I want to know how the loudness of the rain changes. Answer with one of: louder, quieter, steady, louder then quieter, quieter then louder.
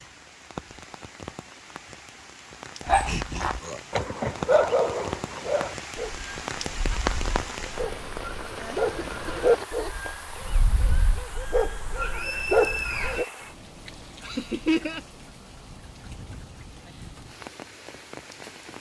louder then quieter.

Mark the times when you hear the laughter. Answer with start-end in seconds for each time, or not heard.
3.0-3.8, 8.6-10.2, 14.2-15.0.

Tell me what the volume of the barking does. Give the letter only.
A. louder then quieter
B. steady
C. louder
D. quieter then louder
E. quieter
D.